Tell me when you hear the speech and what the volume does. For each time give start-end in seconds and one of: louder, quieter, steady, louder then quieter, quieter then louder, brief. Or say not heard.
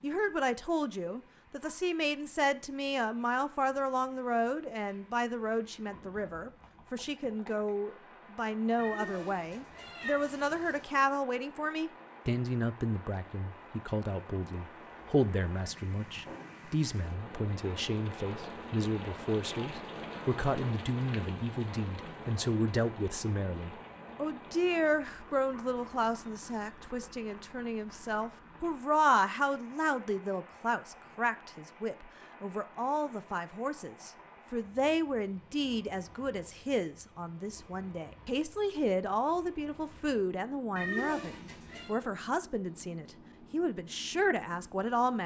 0.0-45.2 steady.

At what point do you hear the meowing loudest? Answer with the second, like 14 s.
41 s.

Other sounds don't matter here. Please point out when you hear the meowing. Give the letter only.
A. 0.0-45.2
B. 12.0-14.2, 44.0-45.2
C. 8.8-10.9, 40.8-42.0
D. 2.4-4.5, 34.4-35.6
C.